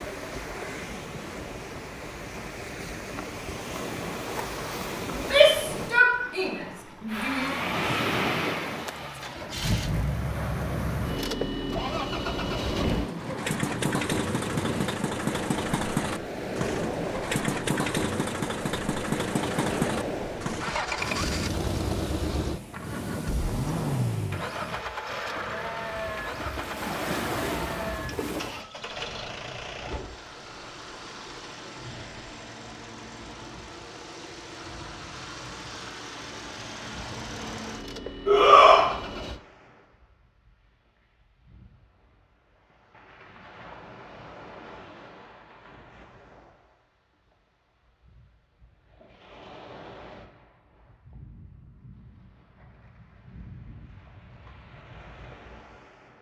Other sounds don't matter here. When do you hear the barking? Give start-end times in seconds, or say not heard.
not heard.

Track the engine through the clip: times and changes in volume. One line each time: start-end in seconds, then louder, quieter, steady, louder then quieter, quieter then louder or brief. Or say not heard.
7.0-39.4 quieter.